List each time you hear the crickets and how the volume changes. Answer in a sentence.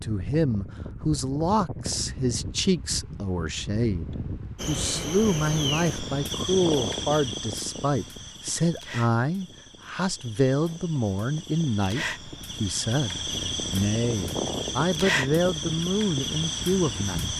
The crickets can be heard from 4.5 to 17.3 s, getting quieter then louder.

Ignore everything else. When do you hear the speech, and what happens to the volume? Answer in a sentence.
The speech can be heard from 0.0 to 17.3 s, at a steady volume.